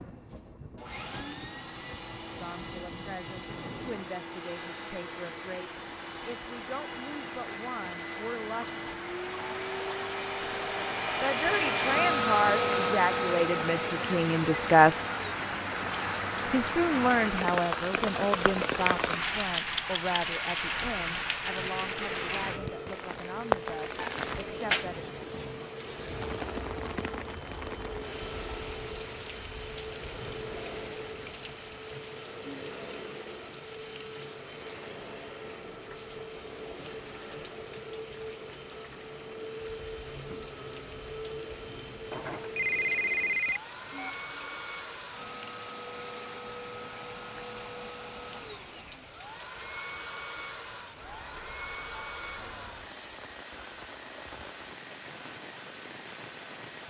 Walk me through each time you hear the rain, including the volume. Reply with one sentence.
The rain can be heard from 0.0 to 56.8 s, getting louder then quieter.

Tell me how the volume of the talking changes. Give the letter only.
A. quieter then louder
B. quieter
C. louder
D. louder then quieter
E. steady
D.